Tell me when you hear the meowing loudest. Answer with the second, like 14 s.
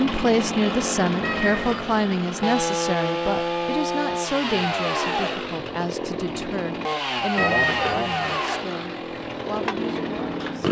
8 s.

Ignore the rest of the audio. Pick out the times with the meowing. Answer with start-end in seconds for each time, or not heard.
1.2-2.0, 7.3-8.4.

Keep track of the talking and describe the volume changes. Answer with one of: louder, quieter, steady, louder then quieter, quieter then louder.
quieter.